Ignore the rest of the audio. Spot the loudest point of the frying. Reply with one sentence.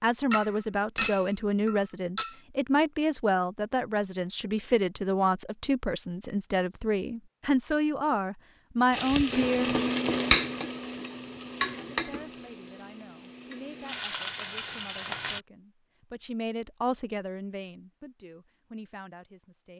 The volume of the frying peaks at 10 seconds.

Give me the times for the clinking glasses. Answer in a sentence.
You can hear the clinking glasses from 0.3 to 2.4 s.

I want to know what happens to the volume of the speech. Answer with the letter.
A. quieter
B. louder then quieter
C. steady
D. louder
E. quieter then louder
E.